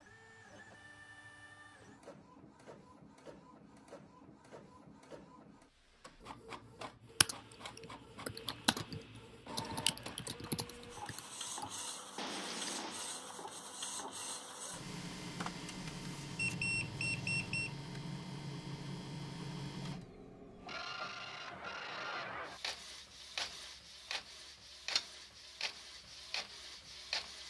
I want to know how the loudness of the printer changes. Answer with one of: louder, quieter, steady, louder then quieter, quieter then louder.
louder.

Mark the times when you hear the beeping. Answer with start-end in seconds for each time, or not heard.
16.4-17.8.